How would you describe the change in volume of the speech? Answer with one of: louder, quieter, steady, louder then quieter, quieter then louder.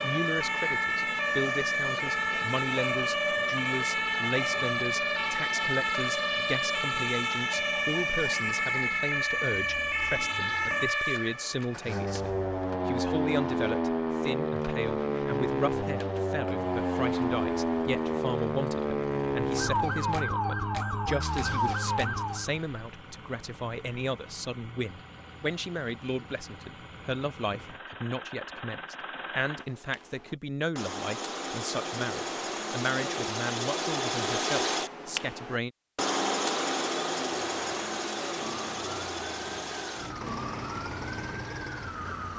steady.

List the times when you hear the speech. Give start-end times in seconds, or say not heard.
0.0-35.7.